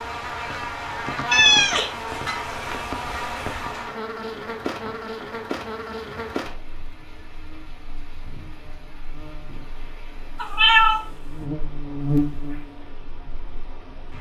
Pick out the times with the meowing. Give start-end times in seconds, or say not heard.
1.3-3.6, 10.3-11.4.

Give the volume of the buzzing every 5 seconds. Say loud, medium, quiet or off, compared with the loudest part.
loud, medium, loud.